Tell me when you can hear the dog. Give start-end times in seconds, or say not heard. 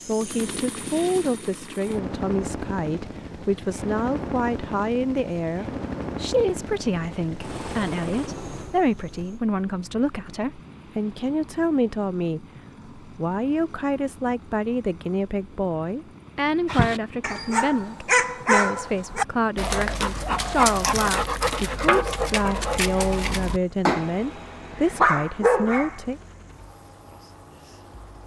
16.6-26.0.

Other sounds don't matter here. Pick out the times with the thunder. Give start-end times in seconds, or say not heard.
not heard.